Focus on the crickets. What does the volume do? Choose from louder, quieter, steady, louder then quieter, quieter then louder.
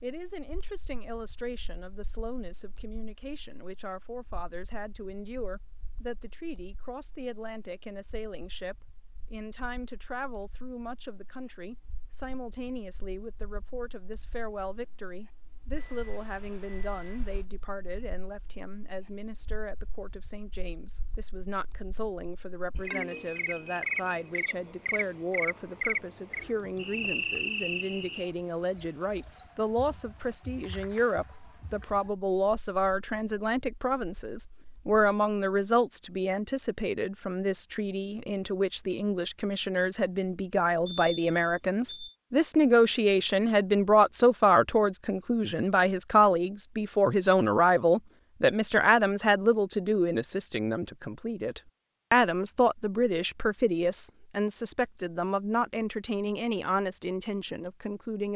louder then quieter.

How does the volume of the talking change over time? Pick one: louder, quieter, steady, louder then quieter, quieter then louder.
louder.